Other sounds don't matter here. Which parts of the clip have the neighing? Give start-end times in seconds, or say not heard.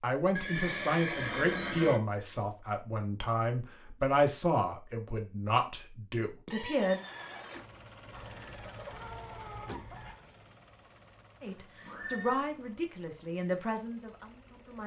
0.3-2.0, 6.5-7.8, 11.6-12.4.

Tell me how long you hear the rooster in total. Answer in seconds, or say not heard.
2 s.